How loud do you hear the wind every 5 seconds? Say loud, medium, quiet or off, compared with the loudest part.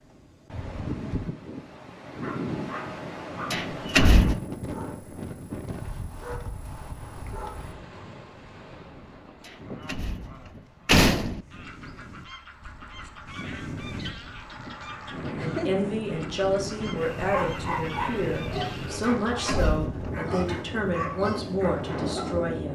loud, medium, medium, loud, loud.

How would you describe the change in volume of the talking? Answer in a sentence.
The loudness of the talking stays about the same.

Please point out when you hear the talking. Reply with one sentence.
The talking can be heard from 15.3 to 22.7 s.